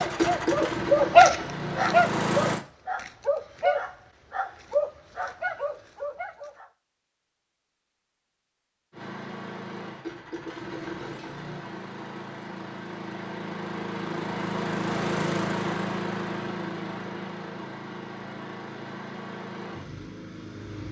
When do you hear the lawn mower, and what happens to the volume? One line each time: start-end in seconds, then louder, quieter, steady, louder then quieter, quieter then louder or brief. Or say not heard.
0.0-2.6 brief
8.9-20.8 louder then quieter.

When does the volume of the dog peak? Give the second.
1 s.